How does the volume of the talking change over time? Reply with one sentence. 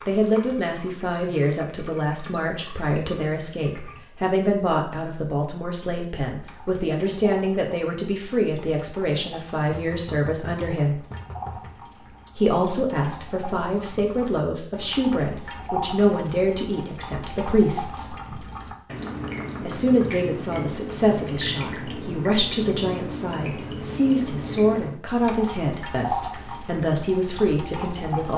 The loudness of the talking stays about the same.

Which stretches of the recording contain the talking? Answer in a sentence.
You can hear the talking from 0.1 to 11.0 s, from 12.3 to 18.1 s and from 19.6 to 28.3 s.